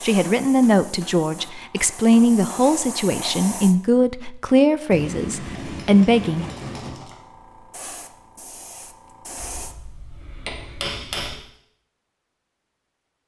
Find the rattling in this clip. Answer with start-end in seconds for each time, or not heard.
6.4-7.2.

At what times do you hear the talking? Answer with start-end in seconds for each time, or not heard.
0.0-6.5.